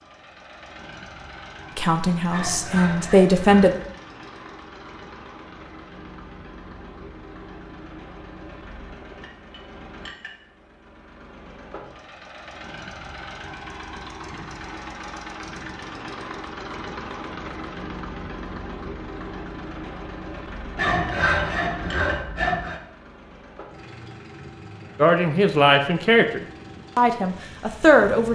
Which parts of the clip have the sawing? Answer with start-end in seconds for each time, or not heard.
2.3-3.8, 20.8-22.8.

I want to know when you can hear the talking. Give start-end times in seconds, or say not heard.
1.8-3.8, 24.9-28.3.